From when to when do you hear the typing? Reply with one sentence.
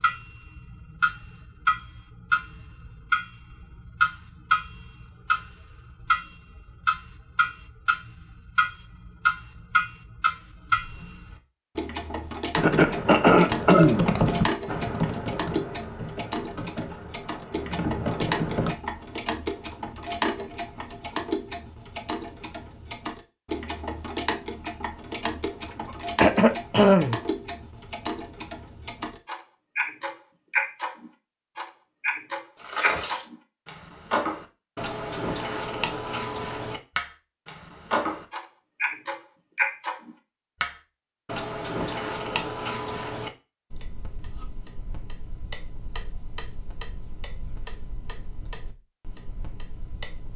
The typing can be heard from 12.6 to 18.8 s.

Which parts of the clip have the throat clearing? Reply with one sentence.
The throat clearing can be heard from 12.6 to 14.1 s and from 25.7 to 27.2 s.